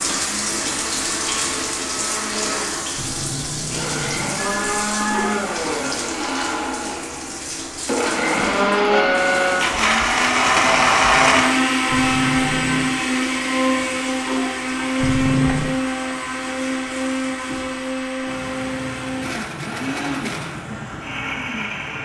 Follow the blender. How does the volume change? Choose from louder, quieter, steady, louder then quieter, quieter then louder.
louder then quieter.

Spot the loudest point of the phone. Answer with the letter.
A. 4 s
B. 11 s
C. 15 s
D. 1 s
C.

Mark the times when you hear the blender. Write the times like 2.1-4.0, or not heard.
0.0-22.0.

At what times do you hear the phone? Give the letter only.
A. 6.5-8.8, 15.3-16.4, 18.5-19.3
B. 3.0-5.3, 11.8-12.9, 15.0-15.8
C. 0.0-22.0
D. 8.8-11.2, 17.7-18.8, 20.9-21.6
B.